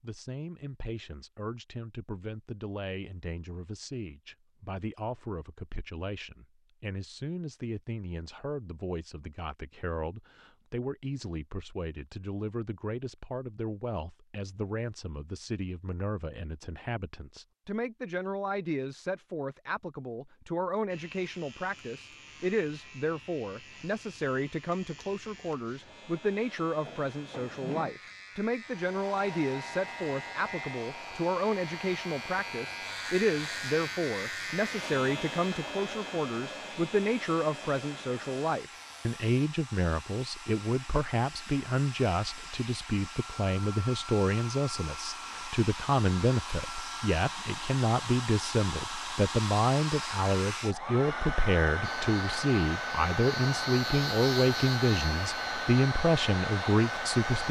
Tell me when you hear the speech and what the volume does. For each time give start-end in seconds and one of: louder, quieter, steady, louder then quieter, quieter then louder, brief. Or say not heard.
0.0-57.4 louder.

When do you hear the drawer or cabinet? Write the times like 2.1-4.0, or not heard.
26.9-27.9.